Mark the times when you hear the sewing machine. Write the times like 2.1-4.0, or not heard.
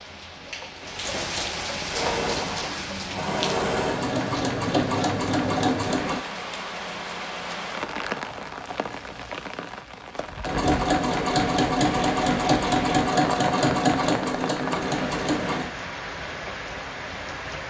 1.9-6.2, 10.4-15.7.